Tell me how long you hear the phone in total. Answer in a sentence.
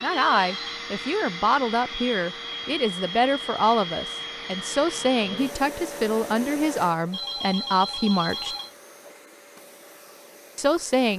You can hear the phone for 2 seconds altogether.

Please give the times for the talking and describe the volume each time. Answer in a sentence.
The talking can be heard from 0.0 to 8.6 s, at a steady volume; and briefly from 10.6 to 11.1 s.